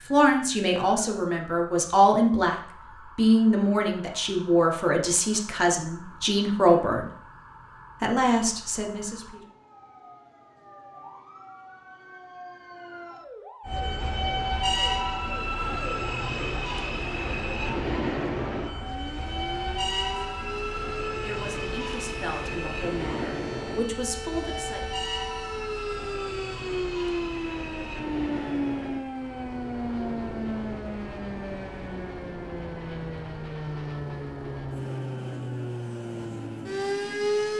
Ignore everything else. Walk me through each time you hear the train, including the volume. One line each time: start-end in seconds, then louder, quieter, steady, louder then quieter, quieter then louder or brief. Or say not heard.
13.7-37.5 quieter.